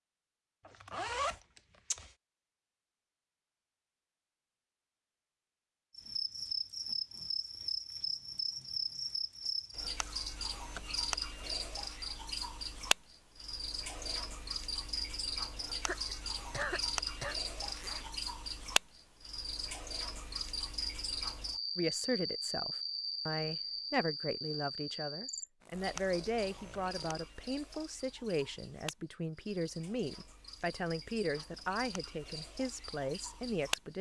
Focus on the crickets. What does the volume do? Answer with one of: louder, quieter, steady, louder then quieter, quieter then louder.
quieter.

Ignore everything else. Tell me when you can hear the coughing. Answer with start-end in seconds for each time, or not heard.
15.8-17.4.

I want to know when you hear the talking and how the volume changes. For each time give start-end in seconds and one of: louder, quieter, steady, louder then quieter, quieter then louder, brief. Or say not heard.
21.8-33.9 steady.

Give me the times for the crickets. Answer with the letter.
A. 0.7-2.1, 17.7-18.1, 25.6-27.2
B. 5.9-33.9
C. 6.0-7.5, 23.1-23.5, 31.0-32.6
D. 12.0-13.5
B.